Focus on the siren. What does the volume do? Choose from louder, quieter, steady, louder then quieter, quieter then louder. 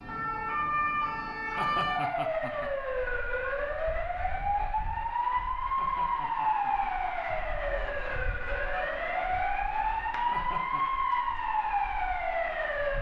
steady.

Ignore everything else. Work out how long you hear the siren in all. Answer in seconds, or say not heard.
13 s.